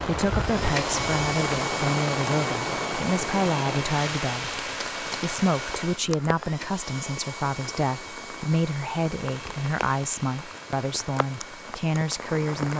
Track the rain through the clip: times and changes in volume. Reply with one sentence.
You can hear the rain from 0.0 to 12.7 s, getting quieter.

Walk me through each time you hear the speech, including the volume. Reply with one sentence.
The speech can be heard from 0.1 to 12.7 s, at a steady volume.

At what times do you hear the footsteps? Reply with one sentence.
You can't hear the footsteps here.